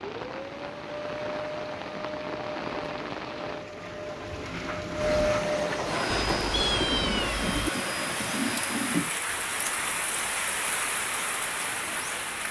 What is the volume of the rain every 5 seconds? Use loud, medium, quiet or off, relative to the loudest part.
medium, loud, loud.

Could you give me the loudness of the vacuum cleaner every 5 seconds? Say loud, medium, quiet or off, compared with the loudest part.
medium, loud, off.